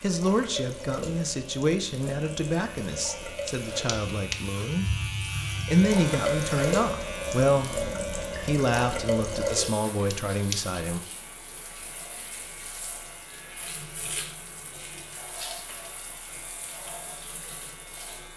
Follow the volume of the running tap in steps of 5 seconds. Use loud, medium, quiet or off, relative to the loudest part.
medium, loud, quiet, quiet.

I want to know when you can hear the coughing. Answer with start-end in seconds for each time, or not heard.
3.5-4.4, 10.1-10.6.